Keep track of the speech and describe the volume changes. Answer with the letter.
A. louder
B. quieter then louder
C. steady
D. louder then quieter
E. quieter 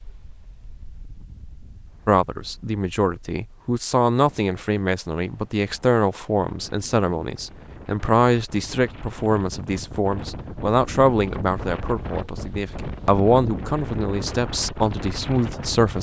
C.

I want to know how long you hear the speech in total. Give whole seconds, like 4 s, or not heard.
14 s.